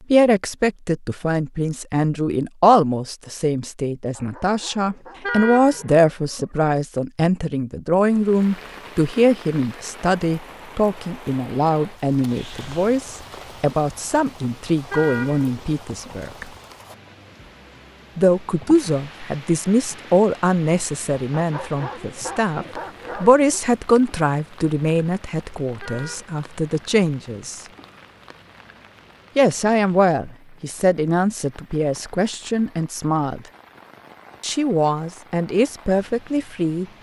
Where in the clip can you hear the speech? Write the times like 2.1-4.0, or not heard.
0.1-16.4, 18.1-27.6, 29.4-33.4, 34.4-36.9.